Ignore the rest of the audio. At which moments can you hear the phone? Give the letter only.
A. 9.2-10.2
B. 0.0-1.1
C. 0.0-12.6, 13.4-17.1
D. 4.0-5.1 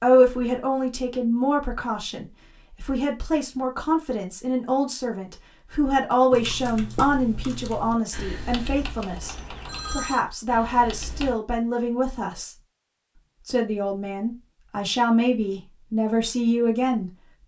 A.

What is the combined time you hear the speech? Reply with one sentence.
The speech can be heard for 16 seconds in total.